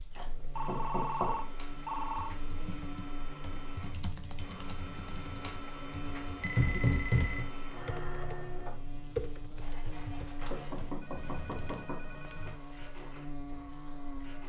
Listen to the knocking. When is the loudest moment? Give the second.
7 s.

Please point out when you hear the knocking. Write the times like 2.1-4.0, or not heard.
0.1-1.4, 6.5-7.5, 10.3-12.5.